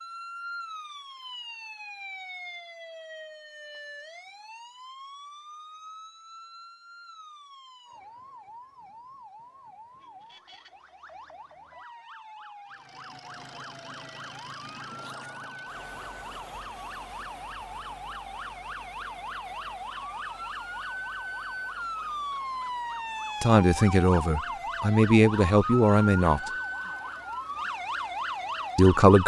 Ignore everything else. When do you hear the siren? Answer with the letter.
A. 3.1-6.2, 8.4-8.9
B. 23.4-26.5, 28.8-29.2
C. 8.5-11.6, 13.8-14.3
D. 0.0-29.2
D.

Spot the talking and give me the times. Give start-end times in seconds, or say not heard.
23.4-26.5, 28.8-29.2.